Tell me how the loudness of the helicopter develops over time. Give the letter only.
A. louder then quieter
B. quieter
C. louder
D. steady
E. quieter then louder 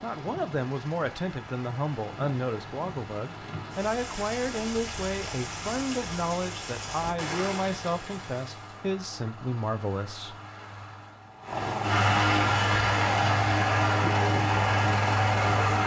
C.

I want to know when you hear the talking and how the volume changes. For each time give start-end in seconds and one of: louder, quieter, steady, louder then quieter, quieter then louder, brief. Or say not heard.
0.0-10.3 steady.